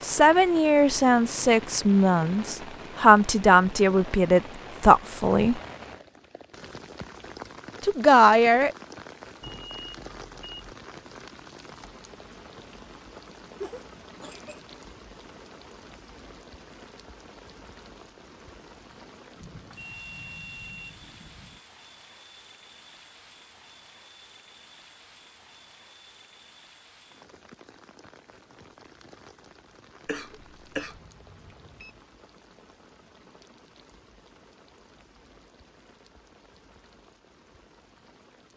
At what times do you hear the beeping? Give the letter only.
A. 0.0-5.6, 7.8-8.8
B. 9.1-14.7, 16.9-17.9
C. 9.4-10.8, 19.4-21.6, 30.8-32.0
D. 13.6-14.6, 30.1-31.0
C.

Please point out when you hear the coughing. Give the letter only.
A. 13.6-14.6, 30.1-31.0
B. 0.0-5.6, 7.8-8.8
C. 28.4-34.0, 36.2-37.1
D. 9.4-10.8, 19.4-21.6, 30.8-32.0
A.